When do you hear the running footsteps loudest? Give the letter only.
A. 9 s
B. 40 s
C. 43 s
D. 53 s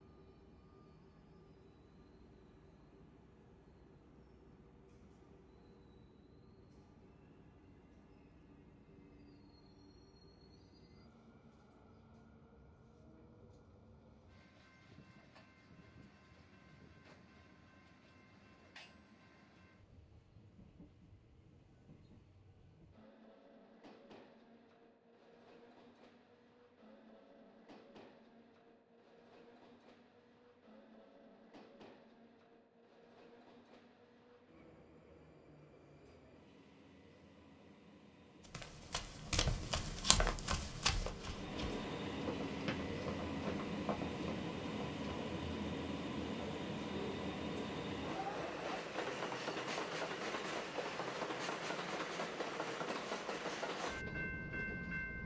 B.